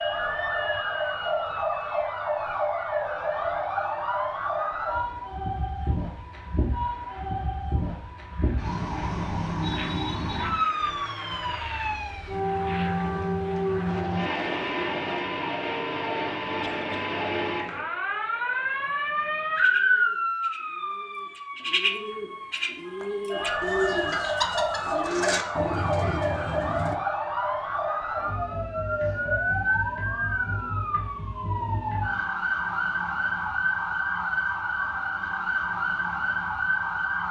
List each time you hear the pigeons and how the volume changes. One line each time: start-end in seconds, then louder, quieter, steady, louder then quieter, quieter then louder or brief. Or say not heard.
19.6-26.9 louder.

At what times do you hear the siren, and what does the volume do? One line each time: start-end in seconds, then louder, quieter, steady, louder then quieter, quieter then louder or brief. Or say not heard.
0.0-37.2 steady.